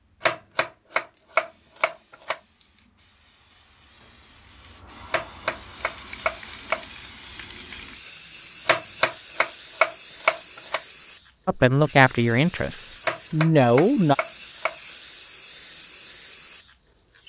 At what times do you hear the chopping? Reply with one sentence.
The chopping can be heard from 0.2 to 2.4 s, from 5.1 to 6.8 s, from 8.7 to 10.8 s and from 13.0 to 14.8 s.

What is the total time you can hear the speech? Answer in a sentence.
You can hear the speech for 3 seconds altogether.